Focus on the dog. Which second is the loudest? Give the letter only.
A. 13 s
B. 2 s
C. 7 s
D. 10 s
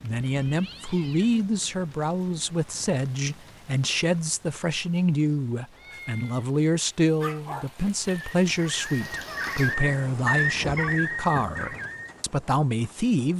D.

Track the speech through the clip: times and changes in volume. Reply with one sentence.
You can hear the speech from 0.0 to 13.3 s, at a steady volume.